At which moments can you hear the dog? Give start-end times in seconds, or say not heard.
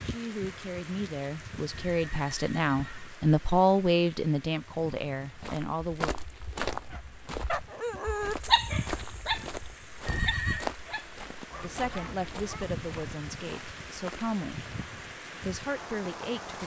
6.9-12.8.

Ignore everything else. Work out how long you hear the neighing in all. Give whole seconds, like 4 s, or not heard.
2 s.